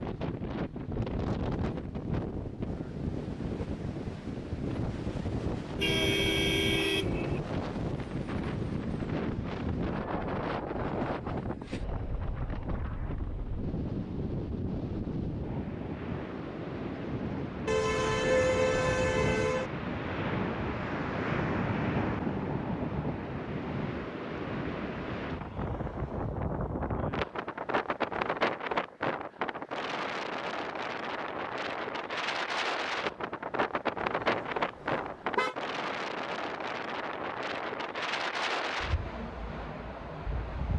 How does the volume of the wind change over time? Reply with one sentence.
The volume of the wind stays about the same.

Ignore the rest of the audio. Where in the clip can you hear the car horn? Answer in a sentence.
You can hear the car horn from 5.8 to 7.4 s, from 17.6 to 19.7 s and from 34.2 to 35.5 s.